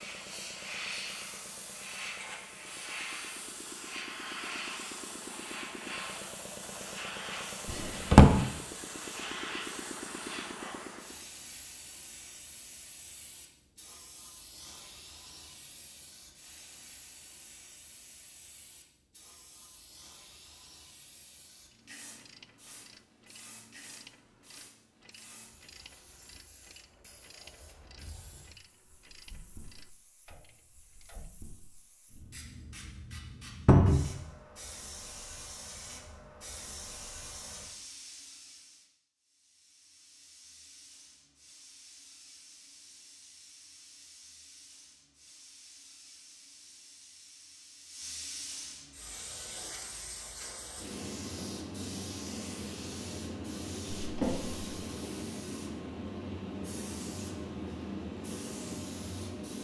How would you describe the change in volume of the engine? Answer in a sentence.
The volume of the engine goes up.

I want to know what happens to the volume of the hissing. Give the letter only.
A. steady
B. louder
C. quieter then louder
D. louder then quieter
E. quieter
C.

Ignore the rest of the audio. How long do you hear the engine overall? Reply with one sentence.
You can hear the engine for 11 seconds altogether.